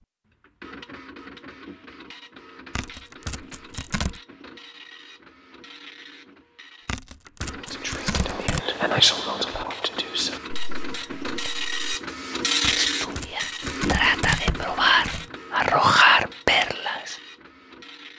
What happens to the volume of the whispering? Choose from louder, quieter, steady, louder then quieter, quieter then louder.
quieter then louder.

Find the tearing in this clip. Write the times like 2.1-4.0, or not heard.
2.8-4.2, 6.8-8.7, 12.6-15.3.